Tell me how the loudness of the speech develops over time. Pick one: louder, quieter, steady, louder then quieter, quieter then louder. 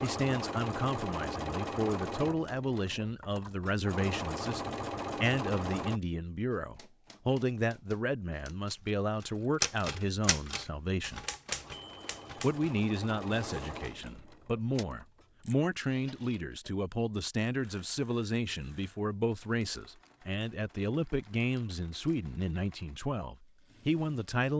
steady.